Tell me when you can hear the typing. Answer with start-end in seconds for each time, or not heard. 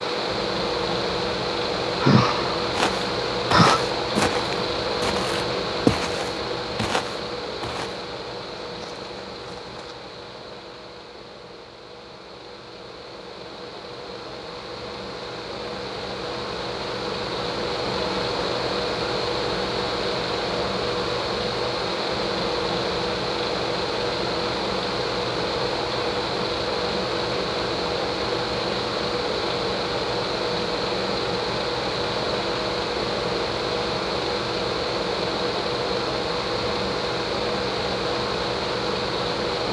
not heard.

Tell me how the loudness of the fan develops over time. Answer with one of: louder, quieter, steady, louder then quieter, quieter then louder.
quieter then louder.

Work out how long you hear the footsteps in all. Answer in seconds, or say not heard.
7 s.